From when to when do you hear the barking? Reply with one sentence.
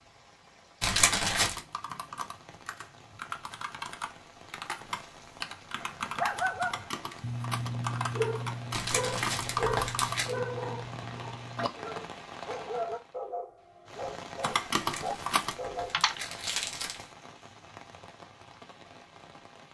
The barking can be heard from 5.8 to 16.1 s.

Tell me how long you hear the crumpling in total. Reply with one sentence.
You can hear the crumpling for 5 seconds altogether.